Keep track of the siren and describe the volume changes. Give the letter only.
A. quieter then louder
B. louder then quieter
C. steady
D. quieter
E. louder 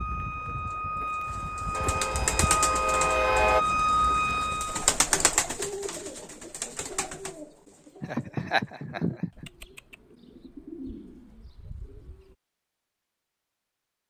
E.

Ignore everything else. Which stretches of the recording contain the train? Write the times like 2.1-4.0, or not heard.
1.7-3.6.